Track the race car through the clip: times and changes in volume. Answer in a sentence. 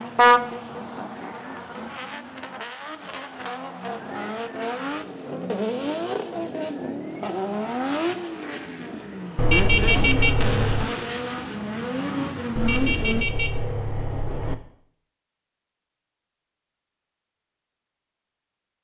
The race car can be heard from 0.0 to 13.2 s, getting louder.